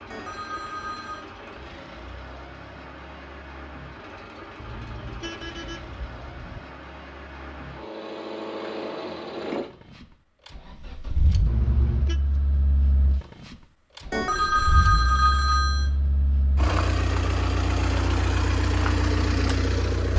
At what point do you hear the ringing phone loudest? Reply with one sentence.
The volume of the ringing phone peaks at 15 seconds.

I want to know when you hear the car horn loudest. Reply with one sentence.
The volume of the car horn peaks at 12 seconds.